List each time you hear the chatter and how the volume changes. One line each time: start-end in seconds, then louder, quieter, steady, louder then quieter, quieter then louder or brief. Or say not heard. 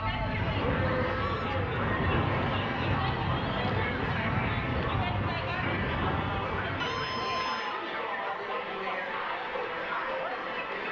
0.0-10.8 steady.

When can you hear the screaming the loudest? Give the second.
7 s.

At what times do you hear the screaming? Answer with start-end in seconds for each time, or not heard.
1.1-1.6, 6.8-7.8.